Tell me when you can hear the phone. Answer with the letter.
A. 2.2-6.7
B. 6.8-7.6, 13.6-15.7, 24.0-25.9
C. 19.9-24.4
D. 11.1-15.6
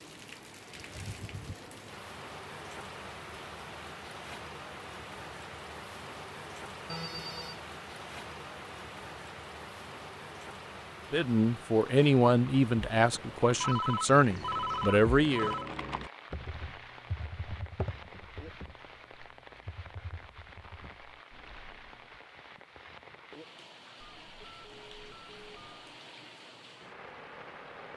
B.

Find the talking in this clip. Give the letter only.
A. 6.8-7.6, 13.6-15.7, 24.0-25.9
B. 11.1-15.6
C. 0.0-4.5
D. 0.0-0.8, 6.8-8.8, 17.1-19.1
B.